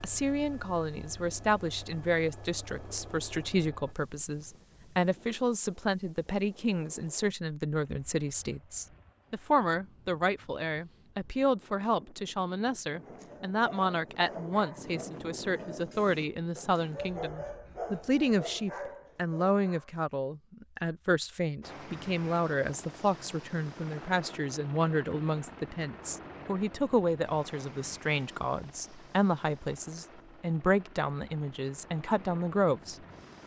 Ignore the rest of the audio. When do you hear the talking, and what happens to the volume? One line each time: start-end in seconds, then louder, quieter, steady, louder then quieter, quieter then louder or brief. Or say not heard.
0.0-33.4 steady.